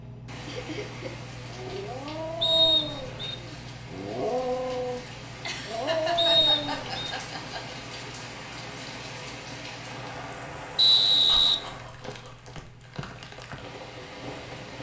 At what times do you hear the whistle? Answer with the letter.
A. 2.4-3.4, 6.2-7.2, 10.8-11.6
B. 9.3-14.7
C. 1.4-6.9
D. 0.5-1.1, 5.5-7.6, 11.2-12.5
A.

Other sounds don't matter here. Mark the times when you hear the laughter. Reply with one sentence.
You can hear the laughter from 0.5 to 1.1 s, from 5.5 to 7.6 s and from 11.2 to 12.5 s.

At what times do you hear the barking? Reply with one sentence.
You can hear the barking from 1.4 to 6.9 s.